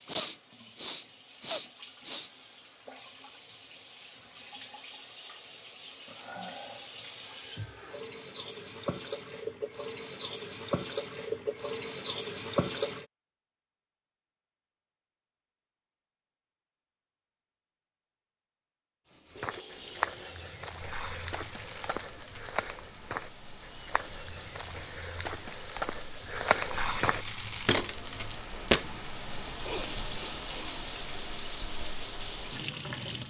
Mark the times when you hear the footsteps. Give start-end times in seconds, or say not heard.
19.3-28.9.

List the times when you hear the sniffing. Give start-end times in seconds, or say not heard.
0.1-2.3, 29.4-30.8.